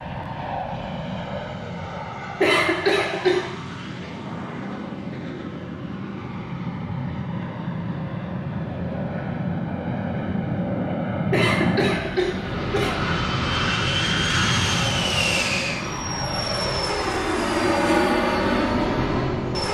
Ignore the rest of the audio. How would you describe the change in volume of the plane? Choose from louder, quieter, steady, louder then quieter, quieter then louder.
louder.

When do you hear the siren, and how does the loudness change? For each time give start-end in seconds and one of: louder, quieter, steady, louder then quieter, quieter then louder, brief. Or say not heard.
not heard.